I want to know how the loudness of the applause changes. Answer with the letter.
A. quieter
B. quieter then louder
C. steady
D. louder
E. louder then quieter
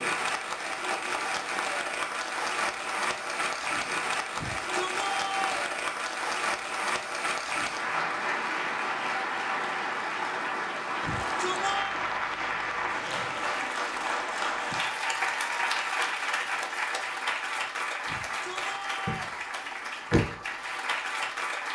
C.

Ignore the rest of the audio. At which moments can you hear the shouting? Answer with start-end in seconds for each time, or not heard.
4.3-5.7, 11.0-12.0, 18.1-19.4.